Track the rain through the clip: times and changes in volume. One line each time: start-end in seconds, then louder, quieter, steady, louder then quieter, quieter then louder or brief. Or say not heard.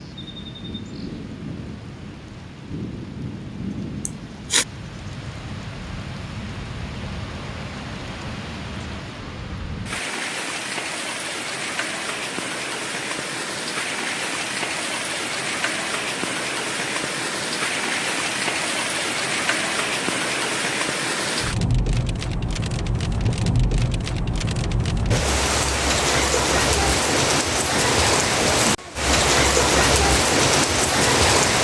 0.0-31.5 louder.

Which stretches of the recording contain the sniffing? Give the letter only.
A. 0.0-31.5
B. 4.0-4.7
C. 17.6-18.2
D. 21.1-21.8
B.